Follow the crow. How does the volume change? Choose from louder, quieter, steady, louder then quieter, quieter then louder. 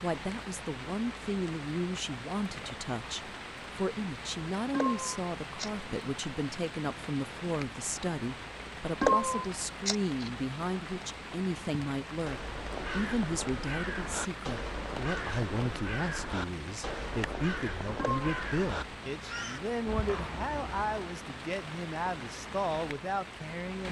steady.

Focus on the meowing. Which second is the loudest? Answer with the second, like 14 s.
9 s.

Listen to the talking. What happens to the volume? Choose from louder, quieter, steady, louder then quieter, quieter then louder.
steady.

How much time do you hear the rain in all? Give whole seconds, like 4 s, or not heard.
24 s.